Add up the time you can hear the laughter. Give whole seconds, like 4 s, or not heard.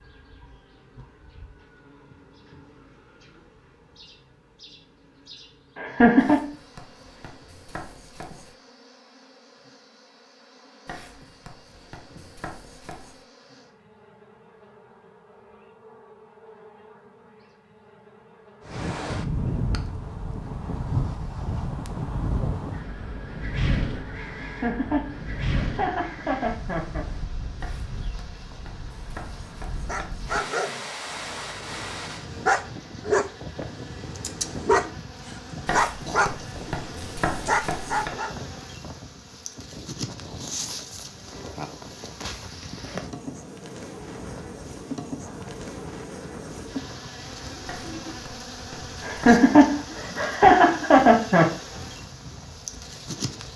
6 s.